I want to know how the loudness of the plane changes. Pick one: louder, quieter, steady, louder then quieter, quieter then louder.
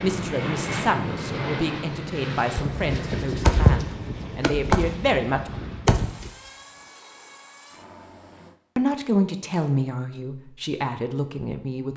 quieter.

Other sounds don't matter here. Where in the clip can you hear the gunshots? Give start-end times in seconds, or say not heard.
2.5-6.3.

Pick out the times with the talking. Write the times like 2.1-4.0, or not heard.
0.0-5.5, 8.8-11.9.